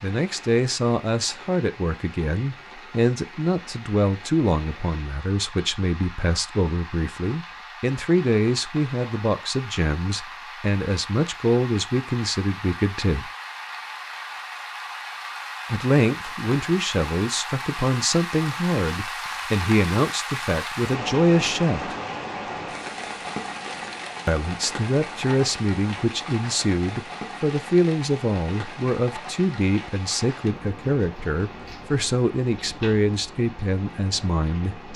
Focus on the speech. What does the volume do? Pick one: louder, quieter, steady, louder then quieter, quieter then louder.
steady.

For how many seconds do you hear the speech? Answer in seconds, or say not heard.
30 s.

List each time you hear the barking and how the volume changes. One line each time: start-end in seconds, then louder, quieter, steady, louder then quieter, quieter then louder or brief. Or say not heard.
not heard.